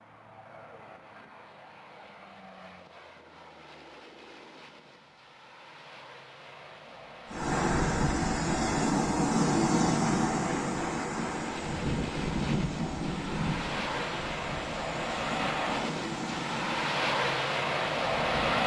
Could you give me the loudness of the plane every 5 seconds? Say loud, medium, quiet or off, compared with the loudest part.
quiet, quiet, medium, loud.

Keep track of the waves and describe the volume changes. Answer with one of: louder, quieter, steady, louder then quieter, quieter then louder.
quieter.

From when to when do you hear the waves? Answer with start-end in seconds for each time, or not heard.
7.3-18.6.